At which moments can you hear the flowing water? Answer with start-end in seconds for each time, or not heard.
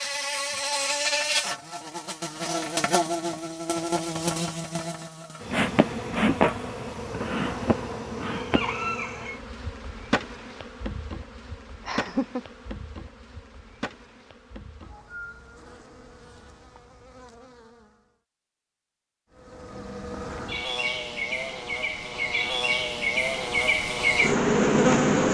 not heard.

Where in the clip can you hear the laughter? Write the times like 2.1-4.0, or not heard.
11.8-12.4.